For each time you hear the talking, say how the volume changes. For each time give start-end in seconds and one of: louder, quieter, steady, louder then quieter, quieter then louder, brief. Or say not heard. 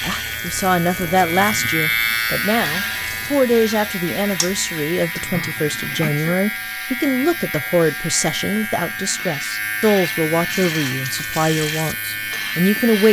0.0-13.0 steady.